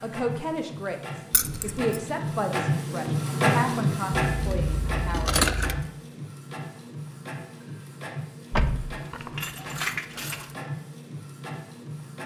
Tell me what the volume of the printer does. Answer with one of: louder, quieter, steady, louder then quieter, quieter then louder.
louder then quieter.